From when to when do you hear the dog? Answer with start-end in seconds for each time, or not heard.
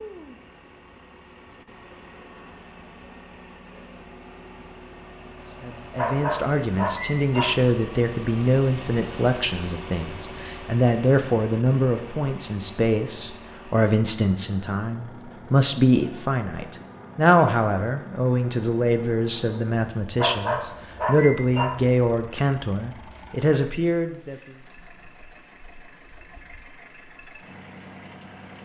6.0-7.5, 20.1-21.7.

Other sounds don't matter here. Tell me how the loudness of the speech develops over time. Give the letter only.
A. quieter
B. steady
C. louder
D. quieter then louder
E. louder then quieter
B.